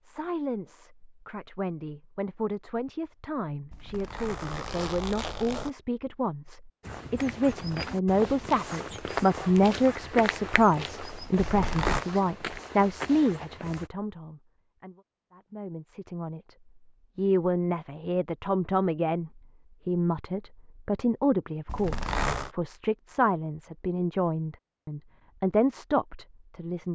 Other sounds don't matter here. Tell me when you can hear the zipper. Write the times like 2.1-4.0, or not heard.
3.7-5.7, 11.3-12.1, 21.6-22.5.